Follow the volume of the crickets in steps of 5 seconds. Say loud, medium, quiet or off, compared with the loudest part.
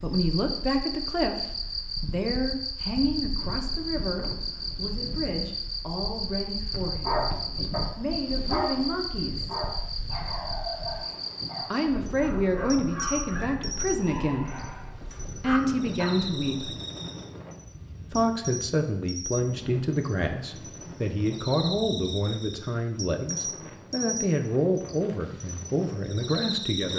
loud, loud, loud, medium, loud, loud.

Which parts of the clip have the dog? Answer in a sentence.
You can hear the dog from 7.0 to 16.2 s.